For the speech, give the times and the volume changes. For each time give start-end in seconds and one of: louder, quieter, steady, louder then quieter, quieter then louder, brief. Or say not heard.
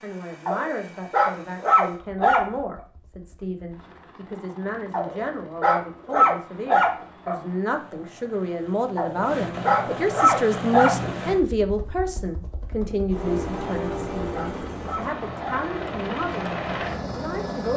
0.0-17.7 louder then quieter.